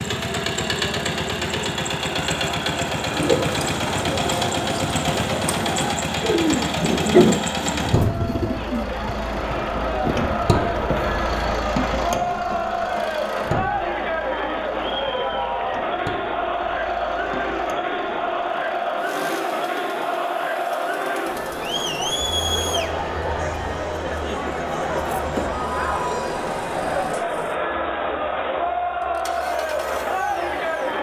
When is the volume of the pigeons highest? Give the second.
7 s.